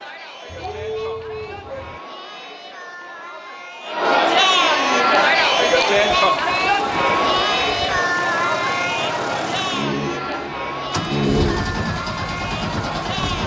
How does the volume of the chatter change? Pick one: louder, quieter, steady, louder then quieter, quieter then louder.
louder then quieter.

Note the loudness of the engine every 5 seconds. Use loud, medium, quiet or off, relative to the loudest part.
off, medium, loud.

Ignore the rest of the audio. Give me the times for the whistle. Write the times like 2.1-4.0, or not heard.
not heard.